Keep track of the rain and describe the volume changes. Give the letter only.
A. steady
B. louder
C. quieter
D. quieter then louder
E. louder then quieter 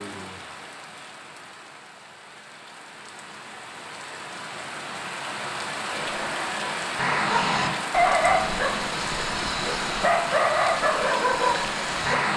B.